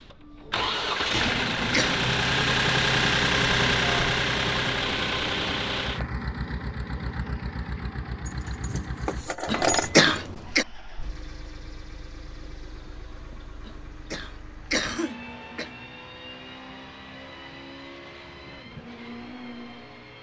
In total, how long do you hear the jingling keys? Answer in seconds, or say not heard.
2 s.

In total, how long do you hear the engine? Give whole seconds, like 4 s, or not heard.
20 s.